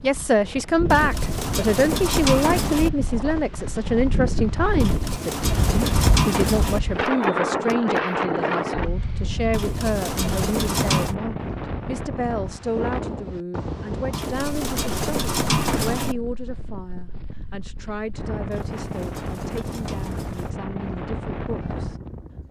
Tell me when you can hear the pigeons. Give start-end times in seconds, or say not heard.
0.9-2.9, 4.8-6.8, 9.5-11.2, 14.1-16.1, 18.5-20.5.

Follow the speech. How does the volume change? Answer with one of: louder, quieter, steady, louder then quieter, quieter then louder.
quieter.